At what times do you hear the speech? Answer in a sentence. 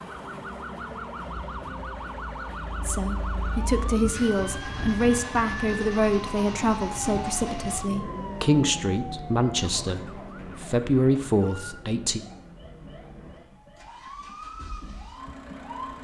The speech can be heard from 2.8 to 12.2 s.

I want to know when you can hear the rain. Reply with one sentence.
The rain can't be heard in this clip.